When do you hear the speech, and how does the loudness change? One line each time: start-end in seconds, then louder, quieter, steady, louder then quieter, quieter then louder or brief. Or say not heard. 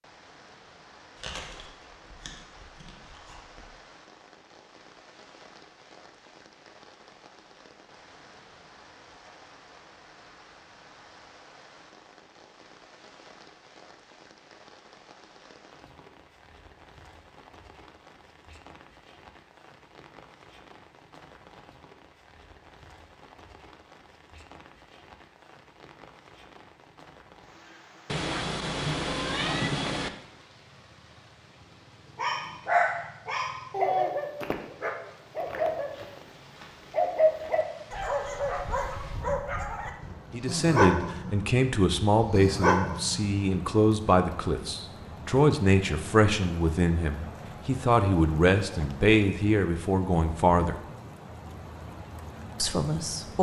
40.3-50.8 steady
52.6-53.3 brief.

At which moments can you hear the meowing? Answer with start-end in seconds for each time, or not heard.
28.1-30.1.